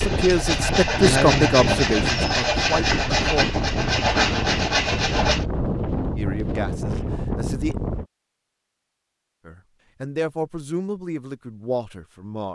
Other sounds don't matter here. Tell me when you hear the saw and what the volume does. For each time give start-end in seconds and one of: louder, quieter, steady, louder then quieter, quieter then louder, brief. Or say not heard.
0.0-5.5 steady.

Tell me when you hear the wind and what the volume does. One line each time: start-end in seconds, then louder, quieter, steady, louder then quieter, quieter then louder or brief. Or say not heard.
0.0-8.1 steady.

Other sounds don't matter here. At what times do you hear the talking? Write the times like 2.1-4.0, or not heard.
0.0-3.5, 6.2-7.8, 9.4-12.5.